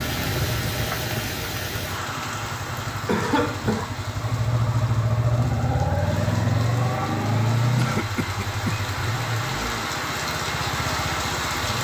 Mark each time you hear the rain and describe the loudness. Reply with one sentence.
You can hear the rain from 0.0 to 11.7 s, getting quieter then louder.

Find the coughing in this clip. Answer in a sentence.
You can hear the coughing from 3.0 to 4.0 s and from 7.8 to 8.8 s.